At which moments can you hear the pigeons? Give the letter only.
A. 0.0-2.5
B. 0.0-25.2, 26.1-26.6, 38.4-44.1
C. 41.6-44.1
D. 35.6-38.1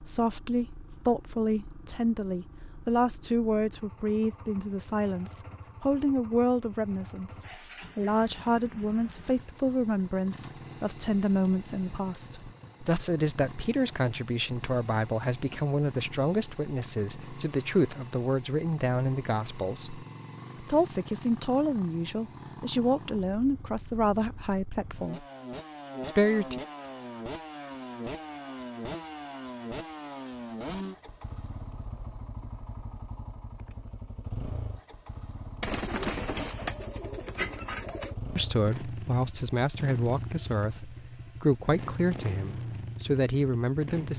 D.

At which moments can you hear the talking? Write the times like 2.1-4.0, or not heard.
0.0-25.2, 26.1-26.6, 38.4-44.1.